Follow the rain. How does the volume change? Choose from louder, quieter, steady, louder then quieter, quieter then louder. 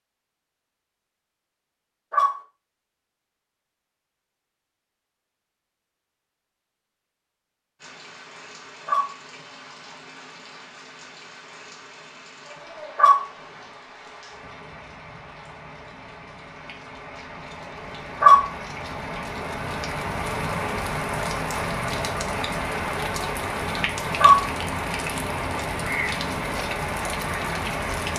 louder.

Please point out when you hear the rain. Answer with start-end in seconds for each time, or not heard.
7.8-28.1.